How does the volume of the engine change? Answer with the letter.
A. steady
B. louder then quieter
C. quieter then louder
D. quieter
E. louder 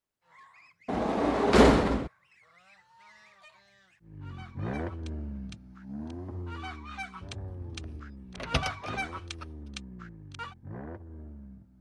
D.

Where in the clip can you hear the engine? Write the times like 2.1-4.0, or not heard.
4.0-11.7.